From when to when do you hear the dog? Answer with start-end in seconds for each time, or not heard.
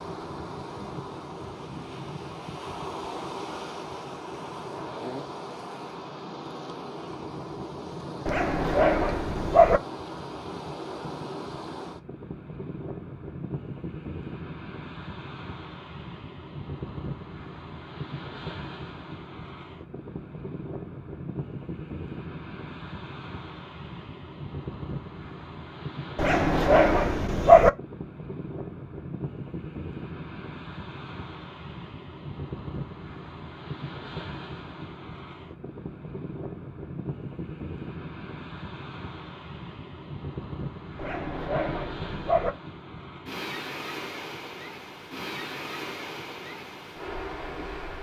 8.2-9.8, 26.1-27.7, 41.0-42.5.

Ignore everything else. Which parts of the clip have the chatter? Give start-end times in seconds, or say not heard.
not heard.